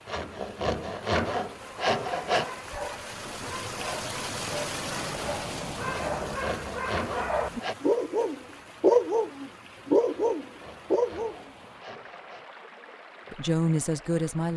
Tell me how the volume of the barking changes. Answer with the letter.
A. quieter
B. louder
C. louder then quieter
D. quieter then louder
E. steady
B.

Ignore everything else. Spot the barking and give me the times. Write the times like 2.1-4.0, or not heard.
1.6-11.5.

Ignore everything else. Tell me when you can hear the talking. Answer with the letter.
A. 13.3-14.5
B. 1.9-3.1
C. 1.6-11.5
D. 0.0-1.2
A.